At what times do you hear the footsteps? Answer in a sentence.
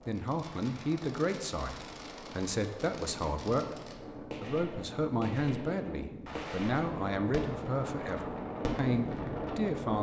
The footsteps can't be heard in this clip.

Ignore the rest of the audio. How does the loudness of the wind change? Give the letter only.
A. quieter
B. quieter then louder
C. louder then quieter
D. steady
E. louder
E.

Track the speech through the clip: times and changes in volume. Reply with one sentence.
The speech can be heard from 0.1 to 9.9 s, at a steady volume.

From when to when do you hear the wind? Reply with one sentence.
You can hear the wind from 0.0 to 9.9 s.